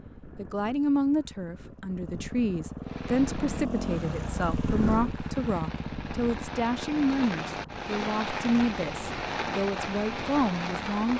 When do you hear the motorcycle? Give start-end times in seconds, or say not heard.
0.0-11.1.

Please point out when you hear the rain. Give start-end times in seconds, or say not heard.
2.8-11.1.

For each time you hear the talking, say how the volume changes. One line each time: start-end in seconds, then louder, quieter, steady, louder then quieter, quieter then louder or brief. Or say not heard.
0.3-11.1 steady.